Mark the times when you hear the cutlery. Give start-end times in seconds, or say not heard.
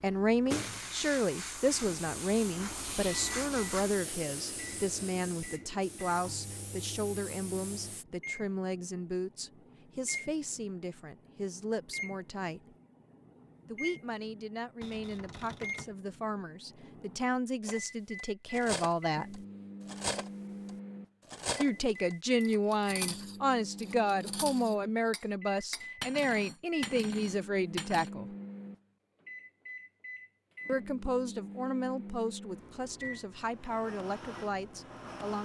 17.6-28.1.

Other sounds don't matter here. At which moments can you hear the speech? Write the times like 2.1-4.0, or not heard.
0.0-12.8, 13.7-19.4, 21.6-28.4, 30.6-35.3.